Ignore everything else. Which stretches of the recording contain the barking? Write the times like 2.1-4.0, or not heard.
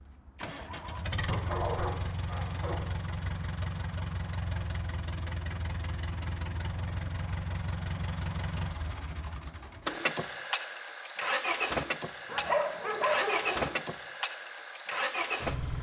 1.2-3.0, 12.2-13.8.